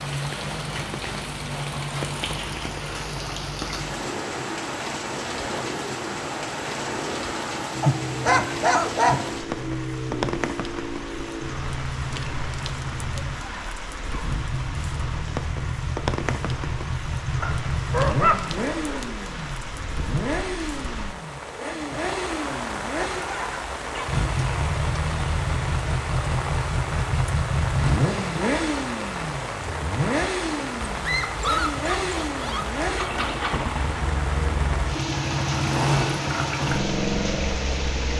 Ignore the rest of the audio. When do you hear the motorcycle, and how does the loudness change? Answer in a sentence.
You can hear the motorcycle from 0.0 to 38.1 s, getting louder.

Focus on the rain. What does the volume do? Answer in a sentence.
The volume of the rain stays about the same.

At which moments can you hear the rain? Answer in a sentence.
The rain can be heard from 0.0 to 38.1 s.